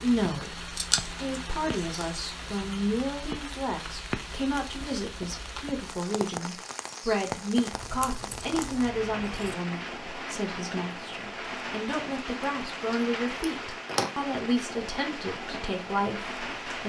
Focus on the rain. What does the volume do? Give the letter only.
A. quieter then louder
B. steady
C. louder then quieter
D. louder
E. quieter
B.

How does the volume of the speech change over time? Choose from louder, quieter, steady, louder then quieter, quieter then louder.
steady.